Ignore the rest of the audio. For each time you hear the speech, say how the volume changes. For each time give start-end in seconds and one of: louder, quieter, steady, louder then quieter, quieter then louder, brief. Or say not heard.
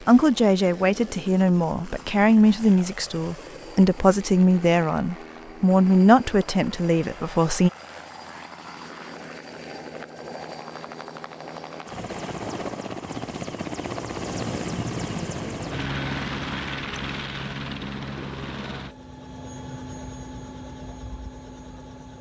0.1-7.7 steady.